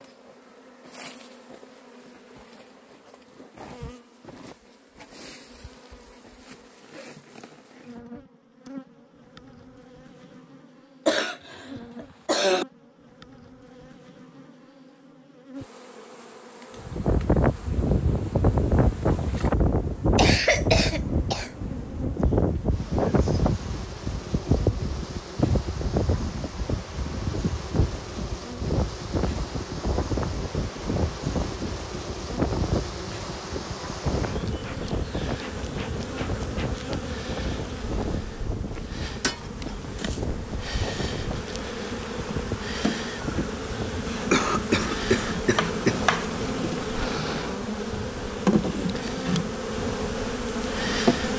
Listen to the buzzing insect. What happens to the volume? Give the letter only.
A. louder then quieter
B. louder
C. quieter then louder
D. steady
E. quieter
B.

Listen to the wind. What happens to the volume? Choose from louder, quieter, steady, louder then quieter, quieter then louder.
quieter.